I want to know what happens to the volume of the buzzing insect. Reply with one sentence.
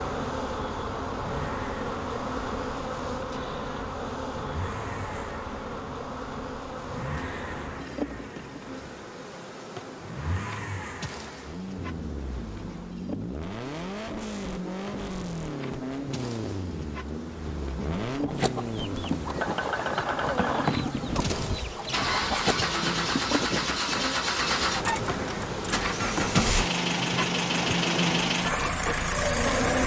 The volume of the buzzing insect goes down, then up.